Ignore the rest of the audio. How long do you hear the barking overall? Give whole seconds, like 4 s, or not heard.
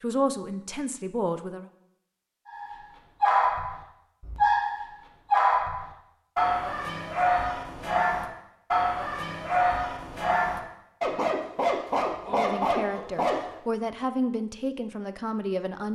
11 s.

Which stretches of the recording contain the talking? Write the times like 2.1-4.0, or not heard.
0.0-1.6, 12.2-15.9.